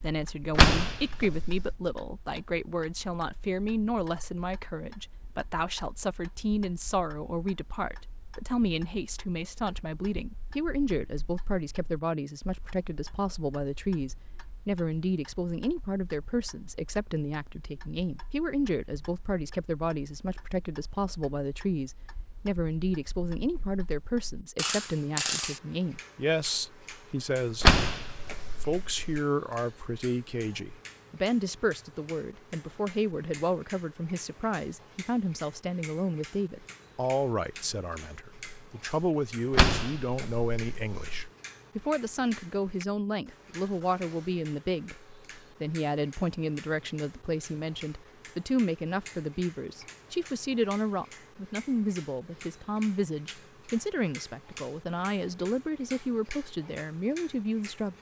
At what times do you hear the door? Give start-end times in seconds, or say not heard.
0.5-1.8, 27.6-29.2, 39.5-41.1.